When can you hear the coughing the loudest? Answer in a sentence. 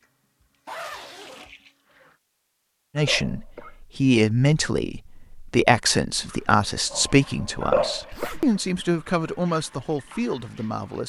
The volume of the coughing peaks at 8 seconds.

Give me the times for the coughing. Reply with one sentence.
The coughing can be heard from 3.0 to 3.8 s and from 7.6 to 8.3 s.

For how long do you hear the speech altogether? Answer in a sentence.
You can hear the speech for 8 seconds altogether.